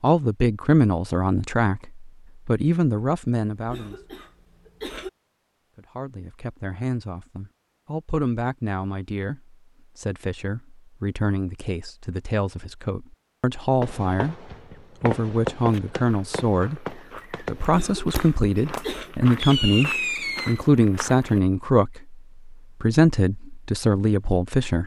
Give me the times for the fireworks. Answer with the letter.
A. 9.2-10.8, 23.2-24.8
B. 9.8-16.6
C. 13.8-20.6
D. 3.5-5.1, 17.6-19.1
C.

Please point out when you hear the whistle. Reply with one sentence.
You can't hear the whistle here.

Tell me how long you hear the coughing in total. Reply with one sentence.
The coughing can be heard for 3 seconds in total.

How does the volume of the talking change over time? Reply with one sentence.
The loudness of the talking goes down, then up.